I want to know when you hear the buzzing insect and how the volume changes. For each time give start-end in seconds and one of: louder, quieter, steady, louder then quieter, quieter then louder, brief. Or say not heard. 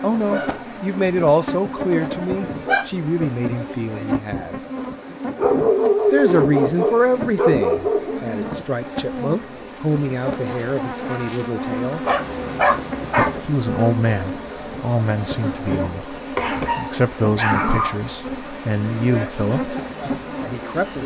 0.0-21.0 steady.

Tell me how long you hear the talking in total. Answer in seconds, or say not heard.
18 s.